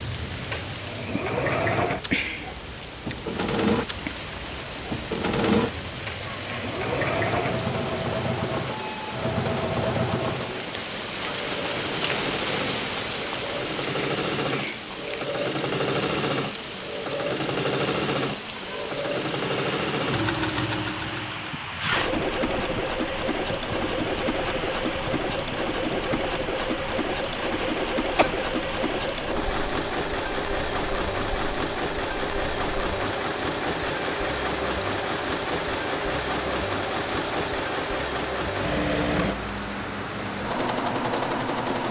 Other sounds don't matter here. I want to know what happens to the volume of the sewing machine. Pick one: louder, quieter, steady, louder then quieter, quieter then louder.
steady.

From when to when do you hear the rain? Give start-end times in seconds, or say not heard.
0.0-41.8.